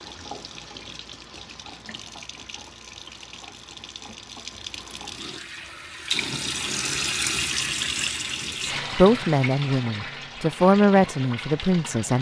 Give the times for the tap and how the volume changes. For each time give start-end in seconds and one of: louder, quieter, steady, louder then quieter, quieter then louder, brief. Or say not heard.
0.0-12.1 louder then quieter.